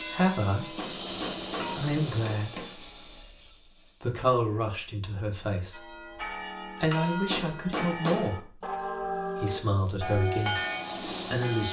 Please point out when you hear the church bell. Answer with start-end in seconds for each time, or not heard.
0.0-1.8, 5.7-11.6.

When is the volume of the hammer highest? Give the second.
8 s.